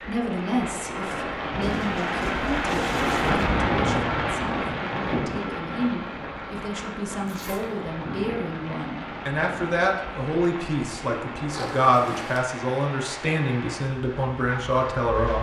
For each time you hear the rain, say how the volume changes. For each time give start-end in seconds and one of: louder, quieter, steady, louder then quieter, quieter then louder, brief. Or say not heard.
0.0-15.3 quieter.